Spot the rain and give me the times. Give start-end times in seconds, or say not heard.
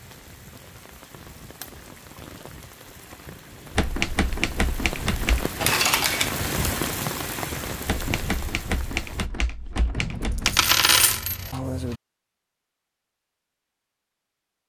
0.0-9.3.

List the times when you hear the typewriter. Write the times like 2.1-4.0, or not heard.
3.8-5.5, 7.8-10.7.